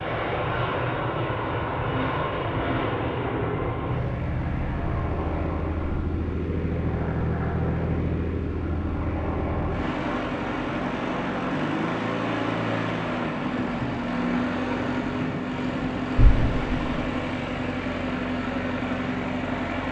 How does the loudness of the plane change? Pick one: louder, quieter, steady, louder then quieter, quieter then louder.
steady.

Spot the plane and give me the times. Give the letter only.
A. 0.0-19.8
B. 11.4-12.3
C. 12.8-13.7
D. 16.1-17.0
A.